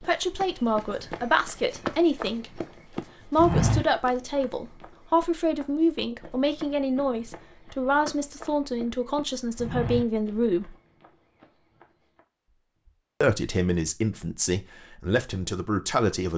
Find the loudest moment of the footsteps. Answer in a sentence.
The loudest moment of the footsteps is at 4 seconds.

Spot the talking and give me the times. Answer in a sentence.
You can hear the talking from 0.0 to 2.6 s, from 3.2 to 10.8 s and from 13.2 to 16.3 s.